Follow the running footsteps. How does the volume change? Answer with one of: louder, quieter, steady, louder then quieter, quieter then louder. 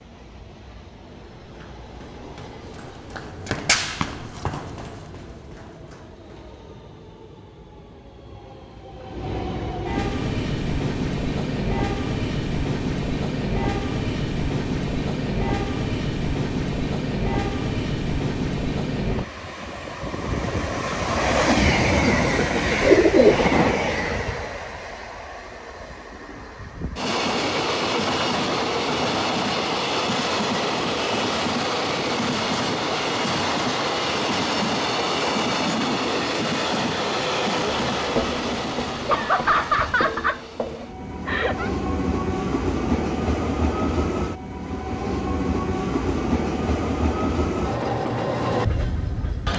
louder then quieter.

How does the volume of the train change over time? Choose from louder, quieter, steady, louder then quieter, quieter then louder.
louder.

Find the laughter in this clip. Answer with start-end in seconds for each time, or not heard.
22.2-22.8, 39.0-41.7.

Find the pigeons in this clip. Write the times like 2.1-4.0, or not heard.
22.8-23.4.